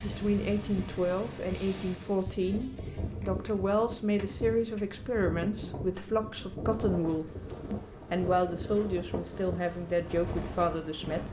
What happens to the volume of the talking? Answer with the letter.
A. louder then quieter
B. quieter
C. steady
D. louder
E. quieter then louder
C.